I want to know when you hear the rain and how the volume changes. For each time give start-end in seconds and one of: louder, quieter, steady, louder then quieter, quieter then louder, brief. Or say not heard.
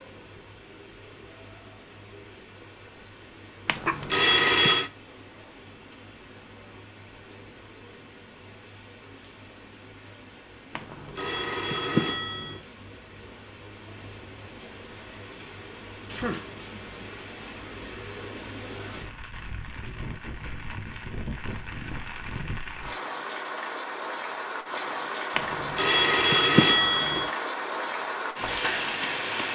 0.0-29.5 louder.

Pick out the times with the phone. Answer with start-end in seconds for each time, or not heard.
3.6-4.9, 10.8-12.6, 25.4-27.3.